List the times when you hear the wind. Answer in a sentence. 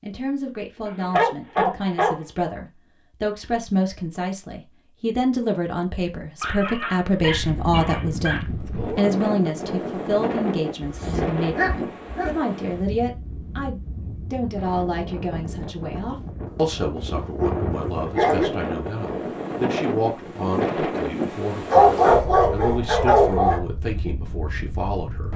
The wind can be heard from 7.2 to 25.3 s.